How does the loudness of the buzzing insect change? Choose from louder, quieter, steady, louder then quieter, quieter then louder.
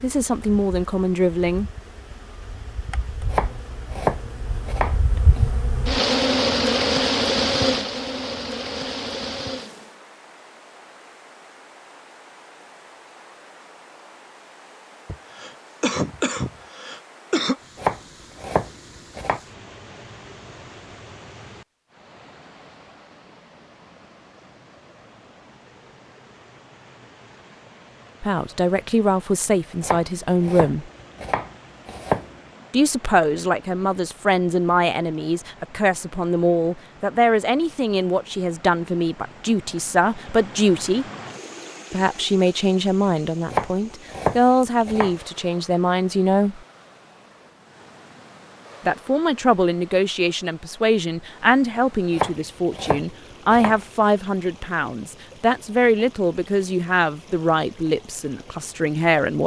louder then quieter.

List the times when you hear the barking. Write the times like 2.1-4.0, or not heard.
not heard.